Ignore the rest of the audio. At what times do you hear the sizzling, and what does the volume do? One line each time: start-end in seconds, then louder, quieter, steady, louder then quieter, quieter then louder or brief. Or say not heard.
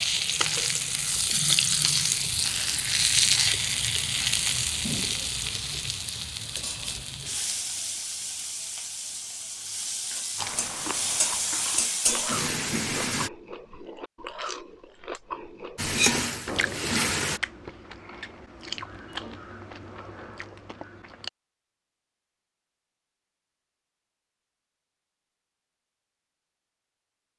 0.0-13.3 quieter then louder
15.8-17.4 brief.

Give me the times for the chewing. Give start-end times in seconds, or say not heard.
10.3-21.3.